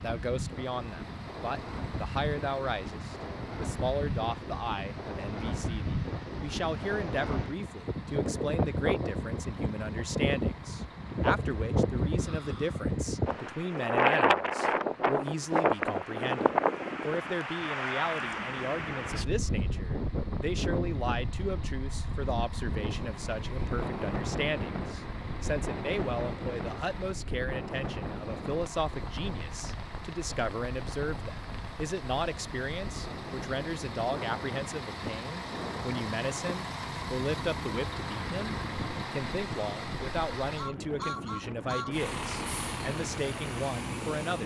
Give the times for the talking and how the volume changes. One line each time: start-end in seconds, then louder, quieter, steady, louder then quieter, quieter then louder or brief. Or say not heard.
0.0-44.4 steady.